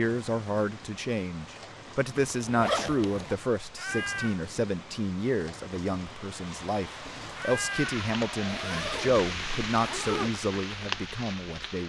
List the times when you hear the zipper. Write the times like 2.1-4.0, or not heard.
2.1-3.4, 8.4-10.3.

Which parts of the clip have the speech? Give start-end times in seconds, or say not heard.
0.0-11.8.